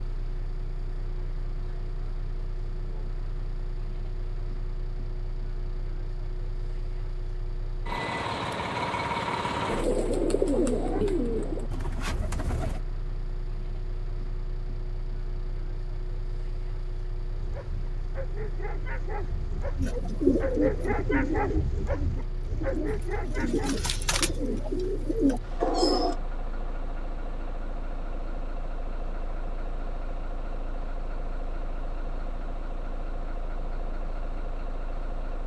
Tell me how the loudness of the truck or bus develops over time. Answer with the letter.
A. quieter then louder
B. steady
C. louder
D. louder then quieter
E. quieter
D.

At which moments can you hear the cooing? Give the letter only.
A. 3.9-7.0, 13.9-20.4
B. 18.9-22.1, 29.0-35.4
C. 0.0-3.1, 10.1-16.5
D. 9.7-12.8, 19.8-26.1
D.